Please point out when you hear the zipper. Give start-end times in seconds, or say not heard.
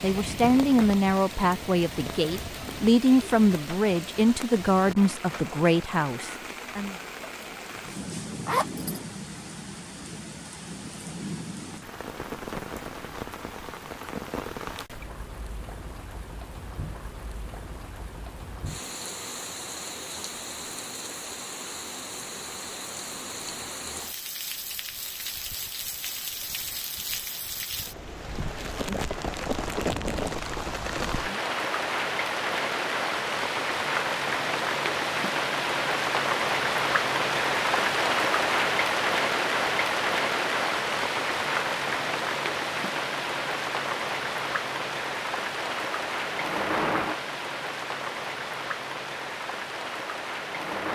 8.4-9.0.